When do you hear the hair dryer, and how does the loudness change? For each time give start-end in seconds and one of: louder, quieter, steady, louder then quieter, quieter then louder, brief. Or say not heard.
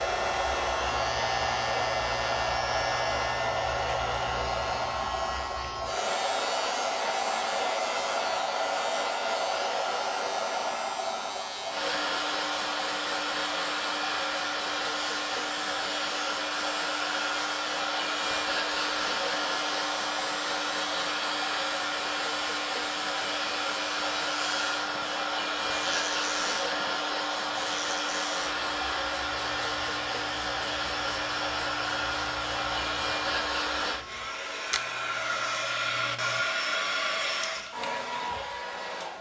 0.0-39.1 steady.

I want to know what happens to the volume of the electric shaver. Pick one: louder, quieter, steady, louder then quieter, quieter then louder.
quieter.